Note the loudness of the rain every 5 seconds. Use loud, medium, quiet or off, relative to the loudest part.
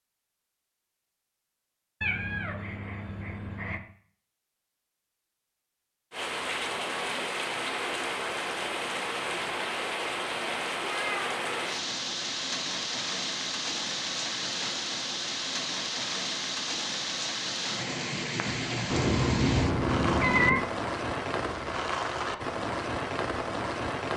off, loud, loud, loud, loud.